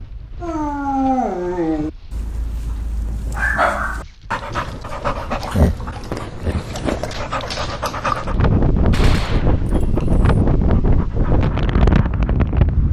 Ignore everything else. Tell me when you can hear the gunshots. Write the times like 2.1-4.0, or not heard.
8.9-10.3.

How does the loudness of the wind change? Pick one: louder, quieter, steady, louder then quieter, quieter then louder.
louder.